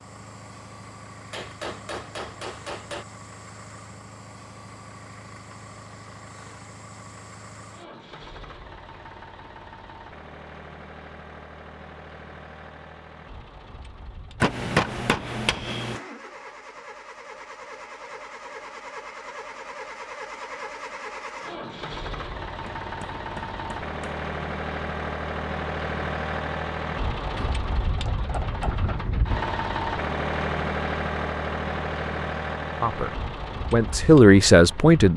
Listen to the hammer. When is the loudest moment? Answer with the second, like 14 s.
15 s.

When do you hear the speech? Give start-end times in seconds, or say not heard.
32.8-35.1.